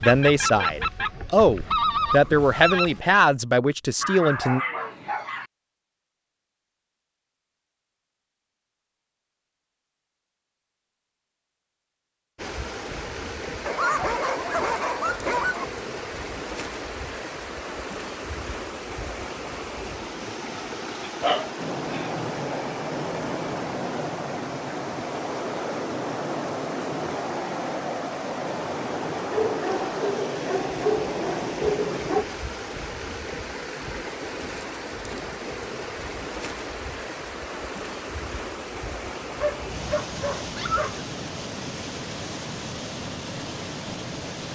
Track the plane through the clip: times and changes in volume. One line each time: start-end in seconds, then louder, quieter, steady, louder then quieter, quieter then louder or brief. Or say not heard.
21.6-32.2 steady.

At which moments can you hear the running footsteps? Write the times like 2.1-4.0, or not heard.
not heard.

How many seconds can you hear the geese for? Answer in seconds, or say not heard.
3 s.